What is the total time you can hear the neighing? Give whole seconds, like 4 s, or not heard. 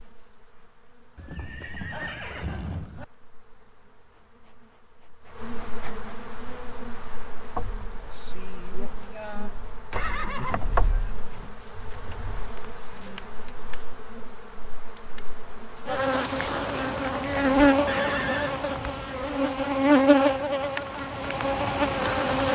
4 s.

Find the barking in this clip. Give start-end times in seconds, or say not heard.
not heard.